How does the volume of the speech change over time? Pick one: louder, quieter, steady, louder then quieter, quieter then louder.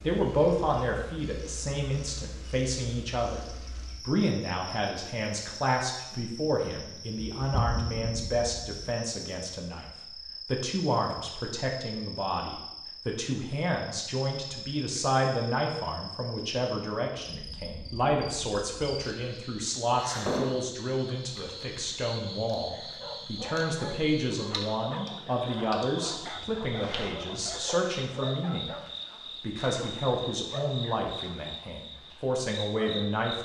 steady.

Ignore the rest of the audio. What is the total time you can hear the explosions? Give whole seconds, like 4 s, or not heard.
2 s.